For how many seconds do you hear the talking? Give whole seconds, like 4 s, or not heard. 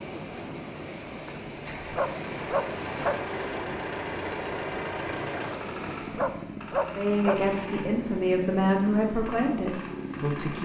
4 s.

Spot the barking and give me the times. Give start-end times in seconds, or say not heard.
1.8-3.1, 6.0-7.3.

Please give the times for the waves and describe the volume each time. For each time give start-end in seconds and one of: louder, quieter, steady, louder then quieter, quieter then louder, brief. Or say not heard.
0.0-6.5 steady.